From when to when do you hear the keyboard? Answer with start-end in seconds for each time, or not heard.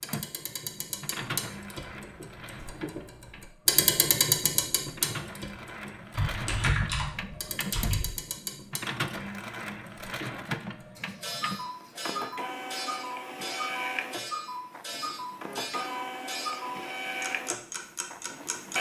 6.1-8.2.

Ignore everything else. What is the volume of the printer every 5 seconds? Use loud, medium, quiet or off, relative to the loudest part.
medium, loud, loud, loud.